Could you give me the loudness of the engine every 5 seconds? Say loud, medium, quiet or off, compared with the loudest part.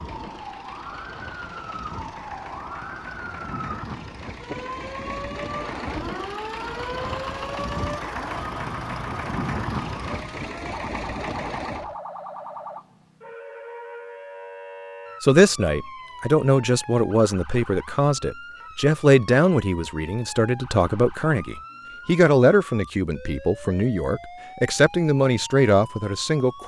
medium, loud, loud, off, off, off.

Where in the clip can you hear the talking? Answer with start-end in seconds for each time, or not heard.
15.2-26.6.